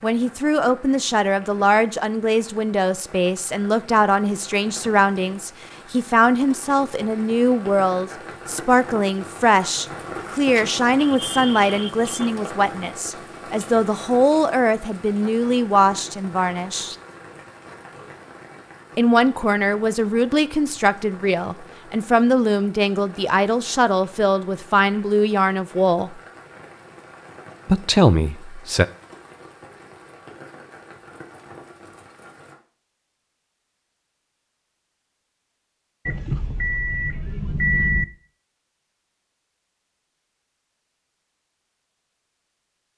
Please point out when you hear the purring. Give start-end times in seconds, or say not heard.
not heard.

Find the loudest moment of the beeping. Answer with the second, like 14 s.
38 s.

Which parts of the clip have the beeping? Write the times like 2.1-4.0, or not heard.
10.6-12.3, 36.0-38.0.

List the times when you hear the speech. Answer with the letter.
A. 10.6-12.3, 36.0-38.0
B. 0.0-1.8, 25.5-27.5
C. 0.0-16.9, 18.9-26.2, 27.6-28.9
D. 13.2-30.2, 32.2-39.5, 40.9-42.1
C.